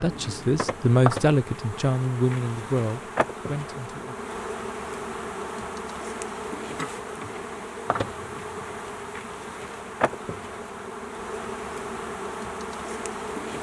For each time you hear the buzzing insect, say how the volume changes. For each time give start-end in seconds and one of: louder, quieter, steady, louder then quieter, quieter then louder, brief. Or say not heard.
0.0-13.5 steady.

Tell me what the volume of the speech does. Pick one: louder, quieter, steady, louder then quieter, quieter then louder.
quieter.